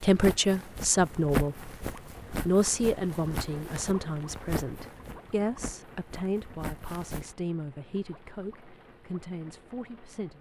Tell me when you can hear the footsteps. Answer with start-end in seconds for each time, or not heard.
0.0-7.3.